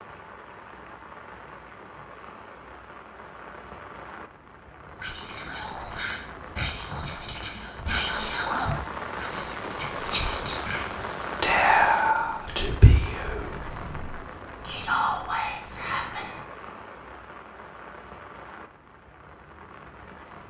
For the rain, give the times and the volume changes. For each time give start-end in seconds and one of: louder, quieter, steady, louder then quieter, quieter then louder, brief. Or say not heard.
0.0-20.4 louder then quieter.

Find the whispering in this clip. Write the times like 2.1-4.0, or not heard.
5.0-16.4.